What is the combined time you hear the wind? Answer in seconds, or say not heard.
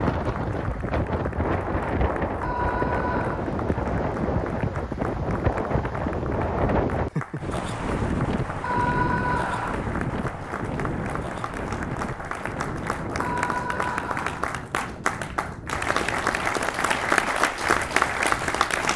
19 s.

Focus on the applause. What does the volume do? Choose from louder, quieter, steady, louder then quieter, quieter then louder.
louder.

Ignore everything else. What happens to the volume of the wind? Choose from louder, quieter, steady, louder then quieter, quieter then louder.
quieter.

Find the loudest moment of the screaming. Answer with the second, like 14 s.
9 s.